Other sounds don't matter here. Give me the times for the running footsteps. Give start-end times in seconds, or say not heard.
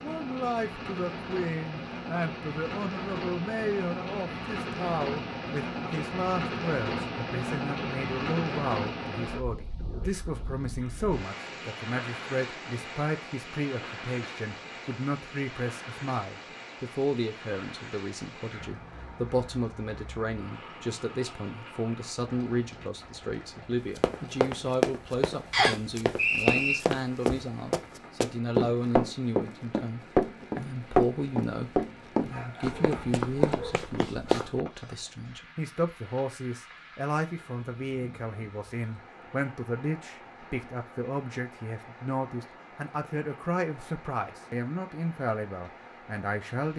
23.9-34.6.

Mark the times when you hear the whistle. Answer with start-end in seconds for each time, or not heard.
25.5-26.8.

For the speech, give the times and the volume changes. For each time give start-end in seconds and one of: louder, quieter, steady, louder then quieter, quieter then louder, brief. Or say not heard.
0.0-46.7 steady.